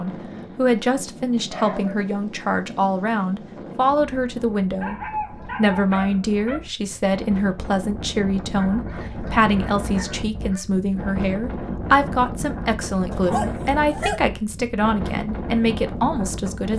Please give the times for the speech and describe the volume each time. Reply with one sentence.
The speech can be heard from 0.0 to 16.7 s, at a steady volume.